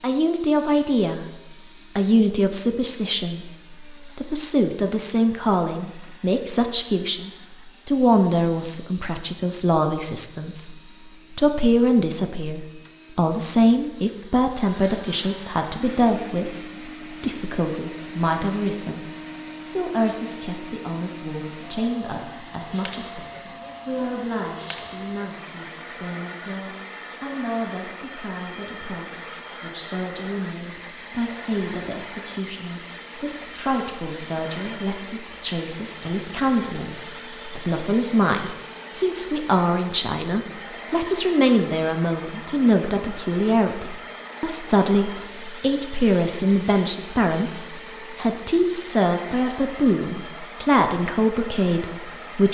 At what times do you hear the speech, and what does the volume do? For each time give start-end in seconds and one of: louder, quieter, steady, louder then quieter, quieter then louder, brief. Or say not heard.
0.0-1.2 brief
1.9-52.4 quieter then louder.